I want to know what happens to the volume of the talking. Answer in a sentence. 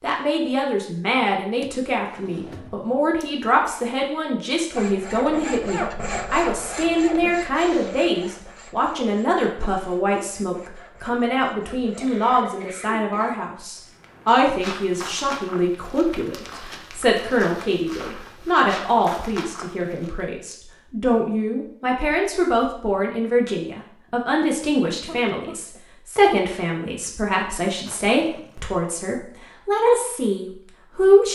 The loudness of the talking stays about the same.